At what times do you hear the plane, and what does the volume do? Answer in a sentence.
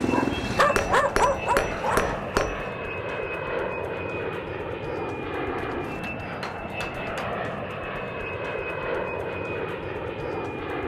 You can hear the plane from 0.0 to 10.8 s, at a steady volume.